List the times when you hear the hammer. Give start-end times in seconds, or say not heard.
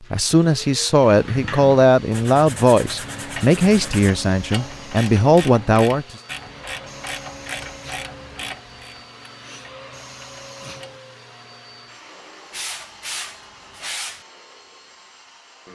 not heard.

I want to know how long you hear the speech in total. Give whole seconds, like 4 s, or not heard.
6 s.